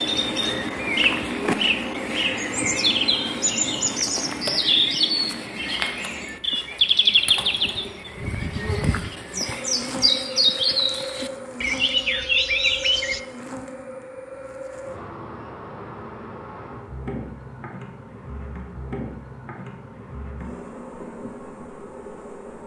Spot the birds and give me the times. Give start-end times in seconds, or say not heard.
0.0-13.2.